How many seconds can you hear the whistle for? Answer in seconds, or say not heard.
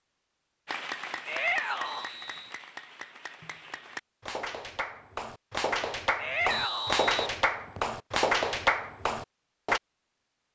2 s.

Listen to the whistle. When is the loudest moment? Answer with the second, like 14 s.
7 s.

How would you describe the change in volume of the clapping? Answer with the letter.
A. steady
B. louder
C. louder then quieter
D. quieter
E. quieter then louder
B.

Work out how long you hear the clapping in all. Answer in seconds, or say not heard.
9 s.